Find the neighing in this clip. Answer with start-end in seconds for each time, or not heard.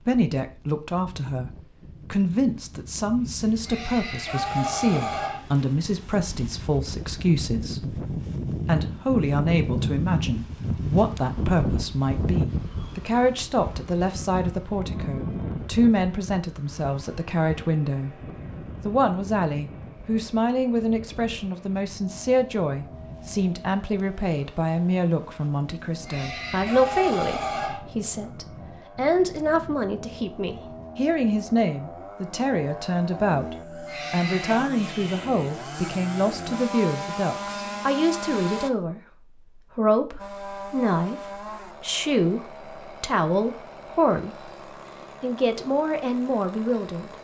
3.6-5.4, 26.1-27.8, 33.9-34.7.